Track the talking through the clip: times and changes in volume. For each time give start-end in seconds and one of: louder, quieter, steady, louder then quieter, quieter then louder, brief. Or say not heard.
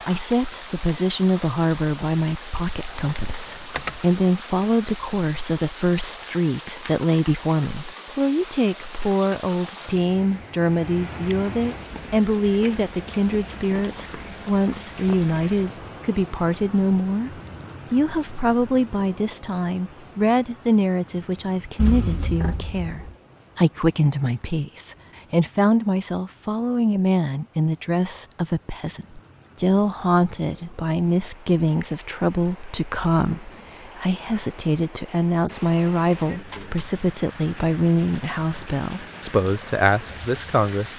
0.1-40.9 steady.